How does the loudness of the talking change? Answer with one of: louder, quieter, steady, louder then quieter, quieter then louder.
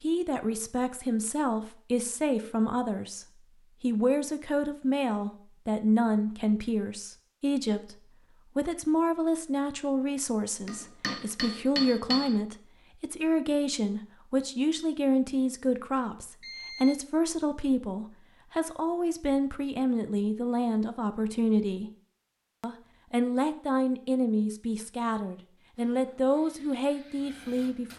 steady.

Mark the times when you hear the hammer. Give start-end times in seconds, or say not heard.
10.7-12.4.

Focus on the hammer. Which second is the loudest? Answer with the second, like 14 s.
12 s.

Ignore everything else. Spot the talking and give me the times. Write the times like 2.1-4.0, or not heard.
0.0-21.9, 22.6-27.9.